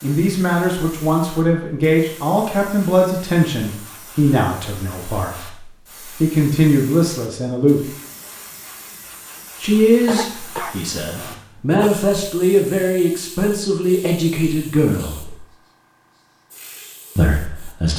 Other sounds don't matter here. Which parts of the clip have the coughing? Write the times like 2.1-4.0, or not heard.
10.1-11.9.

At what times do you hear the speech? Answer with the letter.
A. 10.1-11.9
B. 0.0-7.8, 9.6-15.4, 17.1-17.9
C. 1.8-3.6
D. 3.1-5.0
B.